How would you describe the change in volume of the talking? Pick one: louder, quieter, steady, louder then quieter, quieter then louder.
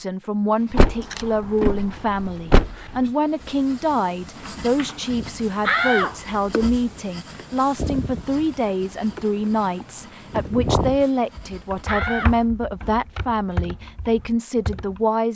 steady.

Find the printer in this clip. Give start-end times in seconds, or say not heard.
not heard.